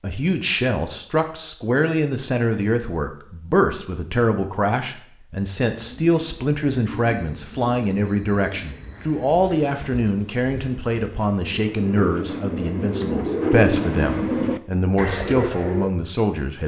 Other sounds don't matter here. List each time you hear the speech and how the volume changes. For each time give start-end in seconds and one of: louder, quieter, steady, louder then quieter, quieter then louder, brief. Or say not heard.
0.0-16.6 steady.